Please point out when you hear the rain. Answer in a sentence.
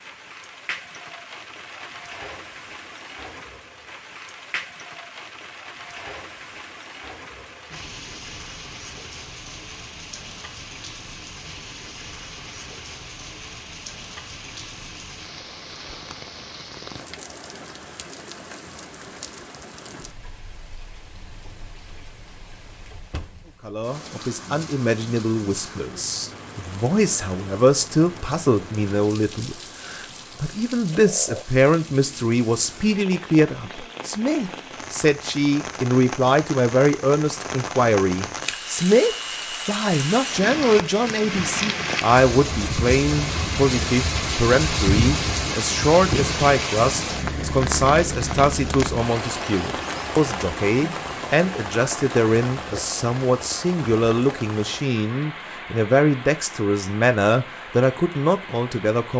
The rain can be heard from 0.0 to 59.1 s.